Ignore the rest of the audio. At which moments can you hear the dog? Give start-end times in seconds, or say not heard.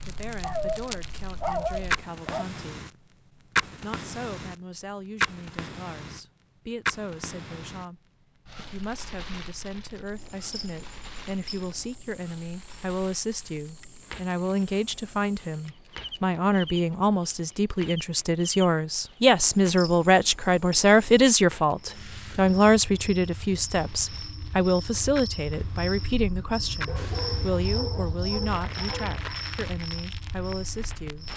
0.4-2.5, 26.9-29.2.